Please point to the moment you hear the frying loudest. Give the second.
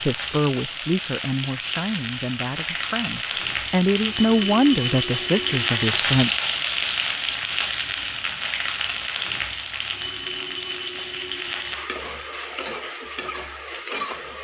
6 s.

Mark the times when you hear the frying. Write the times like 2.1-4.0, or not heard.
0.0-14.3.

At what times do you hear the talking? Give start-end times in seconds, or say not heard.
0.0-6.3.